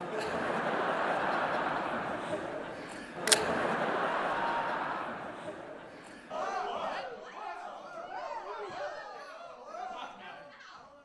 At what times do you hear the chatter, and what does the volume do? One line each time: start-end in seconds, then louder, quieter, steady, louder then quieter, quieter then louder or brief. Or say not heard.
0.0-11.0 quieter.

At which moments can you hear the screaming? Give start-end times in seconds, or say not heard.
4.1-5.1.